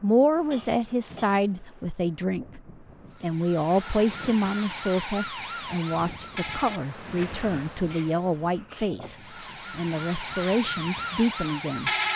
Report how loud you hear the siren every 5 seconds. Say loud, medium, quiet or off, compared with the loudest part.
medium, medium, loud.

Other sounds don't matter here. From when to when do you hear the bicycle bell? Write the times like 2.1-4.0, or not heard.
1.1-1.9, 4.5-5.1, 9.4-9.8.